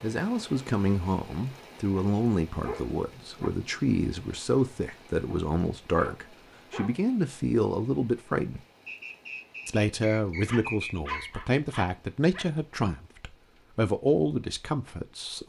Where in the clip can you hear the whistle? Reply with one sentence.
The whistle can be heard from 8.8 to 11.4 s.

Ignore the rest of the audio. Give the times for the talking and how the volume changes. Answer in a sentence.
You can hear the talking from 0.0 to 8.7 s, at a steady volume; and from 9.7 to 15.4 s, at a steady volume.